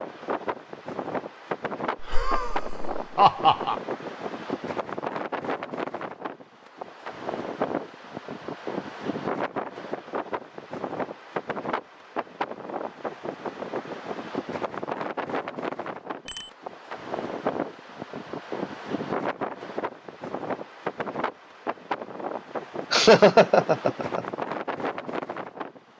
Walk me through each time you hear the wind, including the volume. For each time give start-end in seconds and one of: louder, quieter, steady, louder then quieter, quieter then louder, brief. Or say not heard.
0.0-25.9 steady.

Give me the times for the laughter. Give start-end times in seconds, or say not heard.
2.0-3.8, 22.9-24.2.